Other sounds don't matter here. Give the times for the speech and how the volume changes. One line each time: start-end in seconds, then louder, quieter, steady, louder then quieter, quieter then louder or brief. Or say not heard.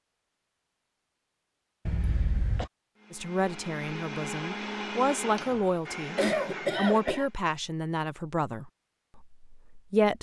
3.1-10.1 louder then quieter.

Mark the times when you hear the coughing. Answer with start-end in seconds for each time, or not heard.
1.9-2.7, 6.2-7.2.